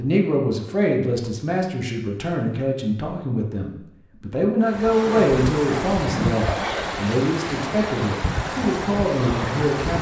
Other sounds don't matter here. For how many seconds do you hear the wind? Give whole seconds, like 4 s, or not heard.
5 s.